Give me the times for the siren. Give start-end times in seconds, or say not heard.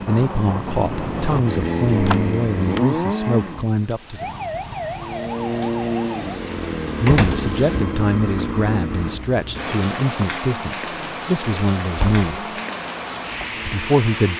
4.2-6.4.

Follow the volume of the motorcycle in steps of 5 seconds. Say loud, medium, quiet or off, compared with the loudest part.
loud, loud, quiet.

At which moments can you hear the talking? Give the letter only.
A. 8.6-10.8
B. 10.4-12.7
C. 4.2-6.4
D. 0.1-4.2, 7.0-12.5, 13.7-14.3
D.